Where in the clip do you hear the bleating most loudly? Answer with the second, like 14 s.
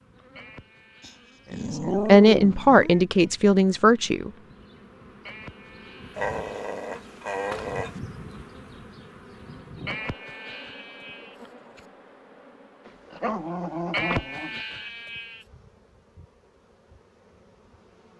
14 s.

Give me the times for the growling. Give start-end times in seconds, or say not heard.
1.0-3.0, 6.2-8.0, 12.8-14.6.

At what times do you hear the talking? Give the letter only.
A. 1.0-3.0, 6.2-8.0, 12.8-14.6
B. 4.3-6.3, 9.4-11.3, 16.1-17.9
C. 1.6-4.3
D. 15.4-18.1
C.